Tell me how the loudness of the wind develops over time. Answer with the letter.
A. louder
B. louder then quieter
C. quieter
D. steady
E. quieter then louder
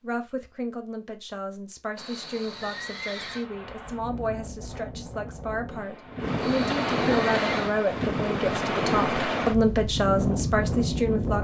A.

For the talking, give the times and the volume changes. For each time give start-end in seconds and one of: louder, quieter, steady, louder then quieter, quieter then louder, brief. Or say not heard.
0.0-11.3 louder.